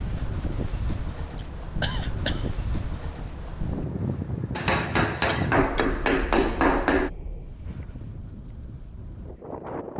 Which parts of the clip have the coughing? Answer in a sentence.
The coughing can be heard from 0.9 to 2.5 s and from 5.2 to 5.8 s.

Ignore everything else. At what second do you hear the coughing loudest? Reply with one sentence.
The loudest moment of the coughing is at 2 seconds.